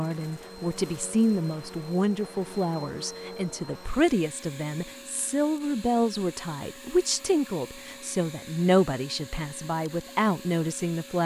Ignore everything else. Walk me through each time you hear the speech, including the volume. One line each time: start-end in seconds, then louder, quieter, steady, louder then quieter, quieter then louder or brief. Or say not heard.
0.0-11.2 steady.